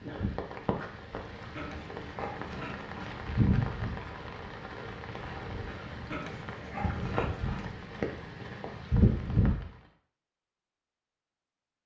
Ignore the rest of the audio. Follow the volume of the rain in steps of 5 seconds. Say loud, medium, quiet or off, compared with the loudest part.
loud, loud, off.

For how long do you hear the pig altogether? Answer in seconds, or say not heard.
3 s.